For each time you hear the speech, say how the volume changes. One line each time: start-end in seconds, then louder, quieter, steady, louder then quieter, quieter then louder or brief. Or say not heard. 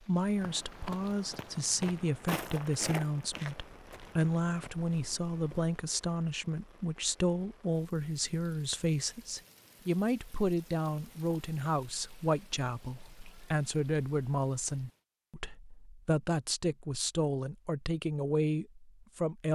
0.1-19.4 steady.